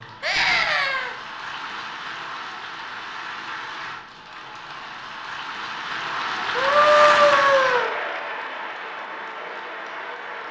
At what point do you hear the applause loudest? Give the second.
7 s.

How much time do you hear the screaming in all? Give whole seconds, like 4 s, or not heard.
2 s.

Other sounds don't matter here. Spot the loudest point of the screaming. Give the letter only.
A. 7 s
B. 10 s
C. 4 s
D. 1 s
A.